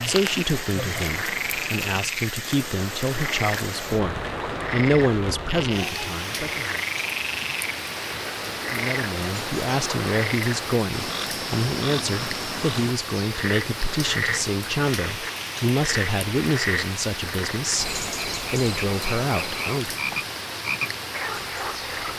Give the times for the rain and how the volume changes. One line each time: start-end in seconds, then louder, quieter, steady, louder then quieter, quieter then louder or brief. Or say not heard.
0.0-22.1 steady.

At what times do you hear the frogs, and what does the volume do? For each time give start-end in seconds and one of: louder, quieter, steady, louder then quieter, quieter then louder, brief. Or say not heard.
0.0-22.1 steady.